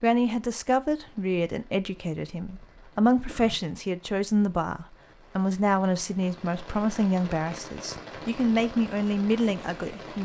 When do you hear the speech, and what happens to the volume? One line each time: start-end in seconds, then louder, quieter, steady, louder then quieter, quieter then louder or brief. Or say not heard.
0.0-10.2 steady.